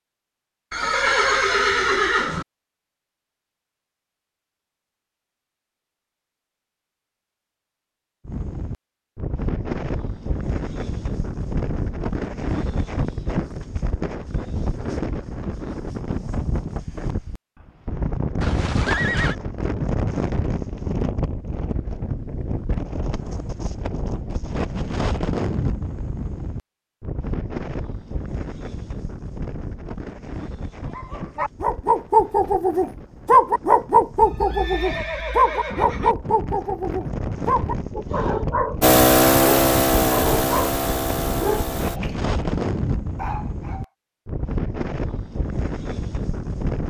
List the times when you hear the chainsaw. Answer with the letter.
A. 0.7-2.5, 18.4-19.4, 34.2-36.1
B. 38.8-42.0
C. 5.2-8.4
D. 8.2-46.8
B.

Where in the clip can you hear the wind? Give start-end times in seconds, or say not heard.
8.2-46.8.